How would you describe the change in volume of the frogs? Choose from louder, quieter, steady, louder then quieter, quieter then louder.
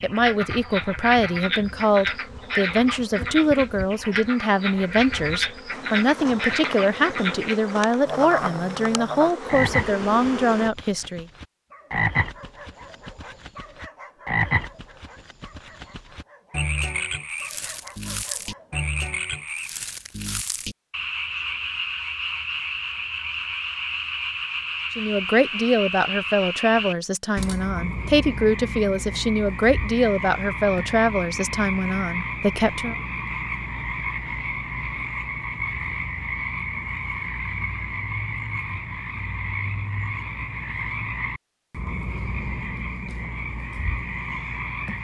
steady.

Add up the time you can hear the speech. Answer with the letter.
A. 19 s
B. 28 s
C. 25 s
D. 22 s
A.